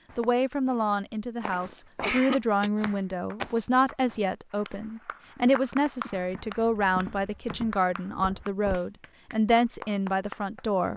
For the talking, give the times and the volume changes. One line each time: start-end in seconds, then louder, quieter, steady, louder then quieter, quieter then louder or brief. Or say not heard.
0.1-10.9 steady.